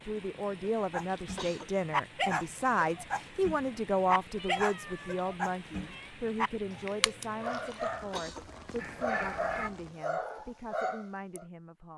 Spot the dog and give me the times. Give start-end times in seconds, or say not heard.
0.8-11.4.